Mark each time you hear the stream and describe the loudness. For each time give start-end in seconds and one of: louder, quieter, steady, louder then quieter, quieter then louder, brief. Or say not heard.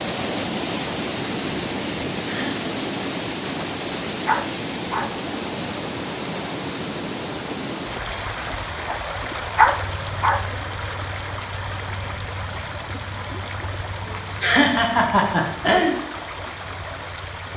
0.0-17.5 quieter.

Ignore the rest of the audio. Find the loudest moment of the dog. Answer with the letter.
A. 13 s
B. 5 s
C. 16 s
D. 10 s
D.